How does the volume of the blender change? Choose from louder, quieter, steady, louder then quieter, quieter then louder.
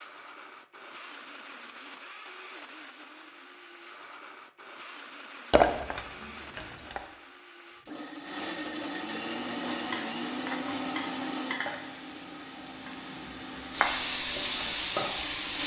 louder then quieter.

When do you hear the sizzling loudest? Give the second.
14 s.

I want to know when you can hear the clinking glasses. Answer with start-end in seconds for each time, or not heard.
5.5-7.0.